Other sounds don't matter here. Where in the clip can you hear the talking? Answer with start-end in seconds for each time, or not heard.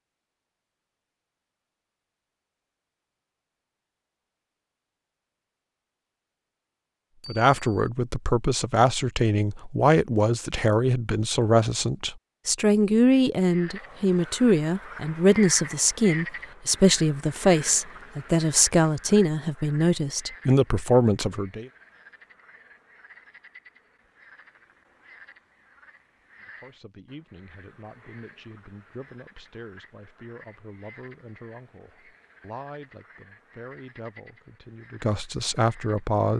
7.2-21.6, 26.4-36.3.